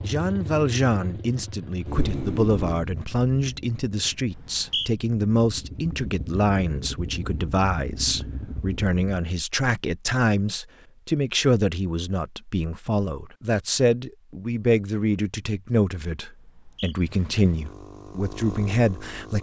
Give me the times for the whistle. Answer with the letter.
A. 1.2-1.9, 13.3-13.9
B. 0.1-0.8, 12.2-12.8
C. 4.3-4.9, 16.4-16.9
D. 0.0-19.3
C.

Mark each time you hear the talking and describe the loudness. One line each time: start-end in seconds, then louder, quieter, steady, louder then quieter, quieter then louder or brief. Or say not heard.
0.0-19.3 steady.